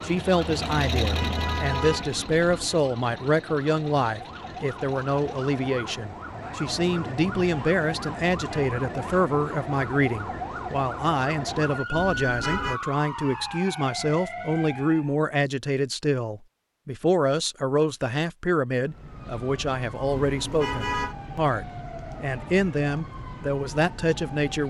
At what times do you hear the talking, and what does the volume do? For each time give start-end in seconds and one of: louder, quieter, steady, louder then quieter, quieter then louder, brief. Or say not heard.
0.0-24.6 steady.